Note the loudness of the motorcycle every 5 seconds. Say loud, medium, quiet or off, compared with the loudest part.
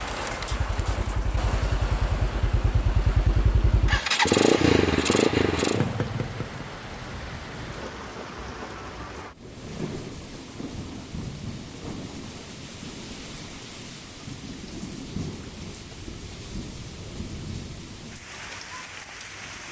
loud, loud, off, off.